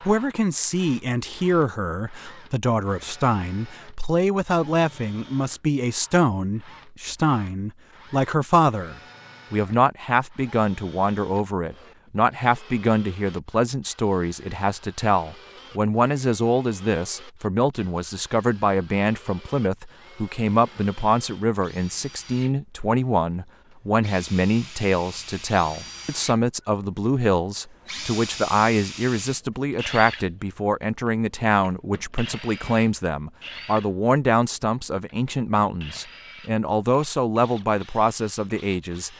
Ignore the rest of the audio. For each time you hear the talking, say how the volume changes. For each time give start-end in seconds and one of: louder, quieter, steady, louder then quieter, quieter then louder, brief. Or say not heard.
0.0-39.1 steady.